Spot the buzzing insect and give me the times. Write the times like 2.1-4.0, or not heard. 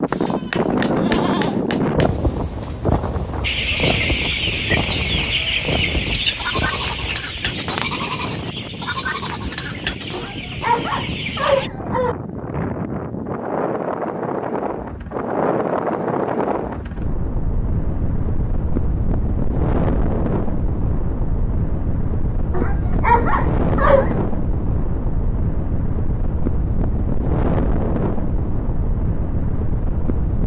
not heard.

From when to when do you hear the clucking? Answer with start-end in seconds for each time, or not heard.
3.4-11.7.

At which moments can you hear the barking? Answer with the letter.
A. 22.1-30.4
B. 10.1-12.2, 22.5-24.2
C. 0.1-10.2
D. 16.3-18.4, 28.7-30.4
B.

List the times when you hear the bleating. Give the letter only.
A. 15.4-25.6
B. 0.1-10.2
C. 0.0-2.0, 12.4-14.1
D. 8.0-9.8
B.